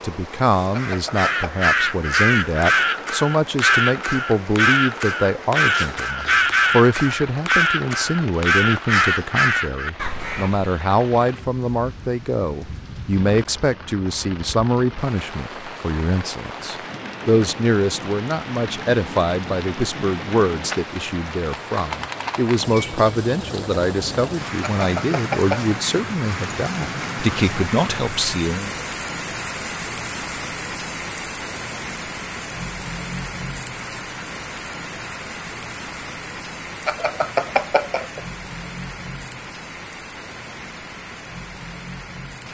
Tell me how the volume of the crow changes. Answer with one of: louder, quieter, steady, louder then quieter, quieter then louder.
steady.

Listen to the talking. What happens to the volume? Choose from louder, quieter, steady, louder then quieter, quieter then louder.
steady.